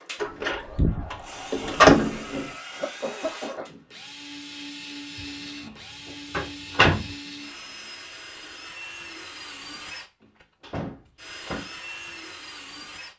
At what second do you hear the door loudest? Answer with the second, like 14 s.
2 s.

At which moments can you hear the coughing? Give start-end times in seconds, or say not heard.
2.7-3.8.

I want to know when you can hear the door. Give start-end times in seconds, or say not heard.
0.2-2.5, 6.3-7.0, 10.2-11.7.